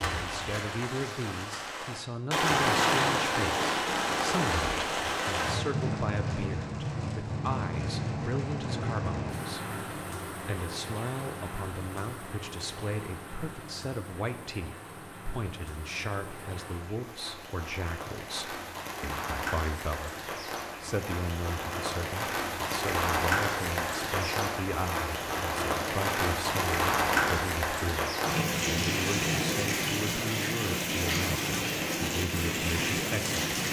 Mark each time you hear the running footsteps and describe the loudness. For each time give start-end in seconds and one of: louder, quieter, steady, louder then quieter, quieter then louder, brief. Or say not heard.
not heard.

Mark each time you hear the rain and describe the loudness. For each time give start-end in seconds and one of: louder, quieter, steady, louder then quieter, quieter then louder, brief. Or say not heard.
0.0-33.6 quieter then louder.